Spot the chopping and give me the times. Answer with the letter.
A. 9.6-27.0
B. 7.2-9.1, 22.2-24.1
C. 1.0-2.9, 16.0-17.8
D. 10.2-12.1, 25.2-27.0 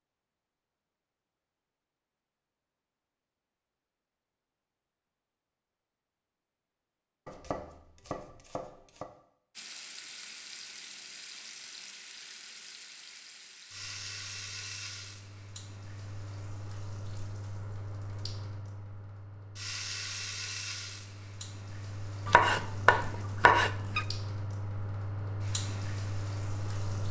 B.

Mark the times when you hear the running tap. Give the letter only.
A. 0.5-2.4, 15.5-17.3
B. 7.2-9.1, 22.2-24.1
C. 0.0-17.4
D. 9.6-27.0
D.